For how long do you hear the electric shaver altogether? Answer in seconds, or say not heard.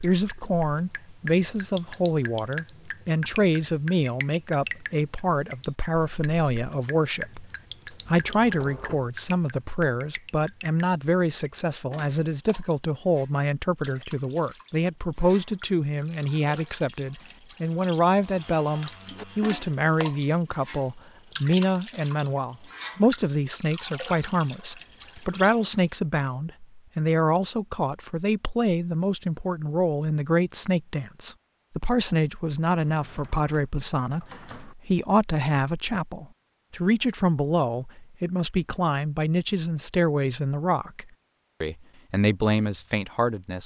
not heard.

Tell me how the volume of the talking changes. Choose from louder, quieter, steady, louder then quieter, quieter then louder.
steady.